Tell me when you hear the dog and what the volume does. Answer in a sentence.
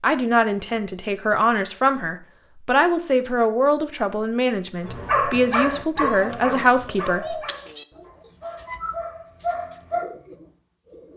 The dog can be heard from 4.8 to 10.1 s, getting quieter then louder.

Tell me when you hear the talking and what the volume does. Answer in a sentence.
You can hear the talking from 0.0 to 7.3 s, at a steady volume.